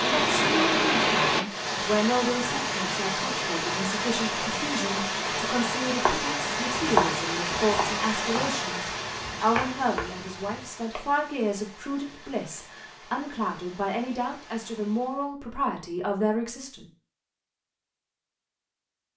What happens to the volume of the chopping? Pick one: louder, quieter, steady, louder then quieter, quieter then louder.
quieter.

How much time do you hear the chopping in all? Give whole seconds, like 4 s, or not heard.
5 s.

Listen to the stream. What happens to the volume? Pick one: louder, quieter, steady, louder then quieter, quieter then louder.
quieter.